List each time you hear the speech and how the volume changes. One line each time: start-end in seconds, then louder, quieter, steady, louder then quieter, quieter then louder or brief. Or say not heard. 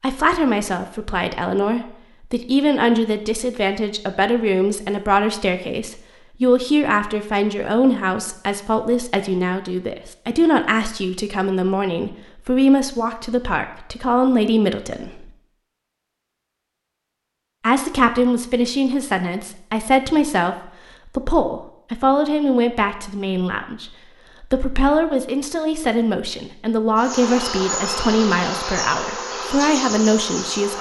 0.0-15.3 steady
17.6-30.7 steady.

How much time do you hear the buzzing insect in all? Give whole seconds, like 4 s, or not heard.
4 s.